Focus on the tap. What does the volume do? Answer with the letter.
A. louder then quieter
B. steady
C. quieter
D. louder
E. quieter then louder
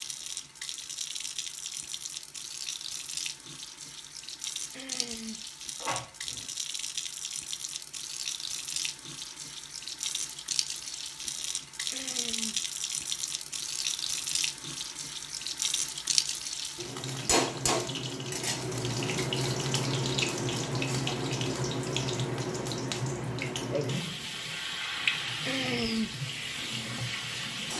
D.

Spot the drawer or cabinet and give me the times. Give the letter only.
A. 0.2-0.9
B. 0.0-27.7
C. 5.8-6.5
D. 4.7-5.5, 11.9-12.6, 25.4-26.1
C.